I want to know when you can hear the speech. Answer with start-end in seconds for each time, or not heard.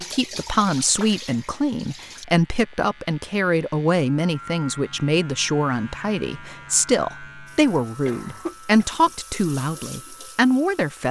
0.1-11.0.